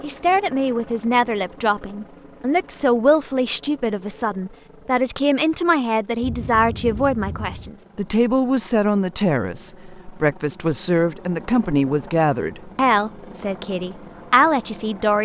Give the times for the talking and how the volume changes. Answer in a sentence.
You can hear the talking from 0.0 to 15.2 s, at a steady volume.